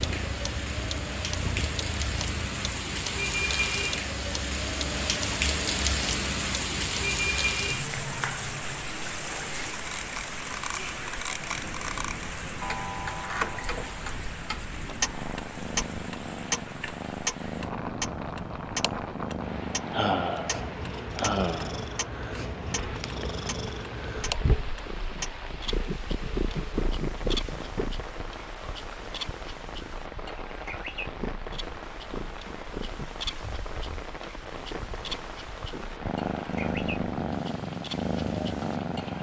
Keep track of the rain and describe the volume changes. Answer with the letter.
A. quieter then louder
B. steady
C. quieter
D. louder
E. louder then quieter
C.